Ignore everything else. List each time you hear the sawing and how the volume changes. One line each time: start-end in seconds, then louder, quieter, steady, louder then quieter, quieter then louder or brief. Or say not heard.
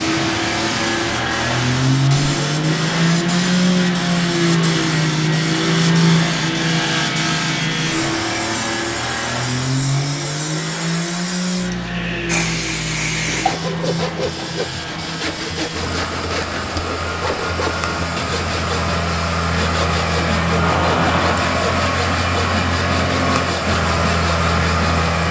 13.2-25.1 steady.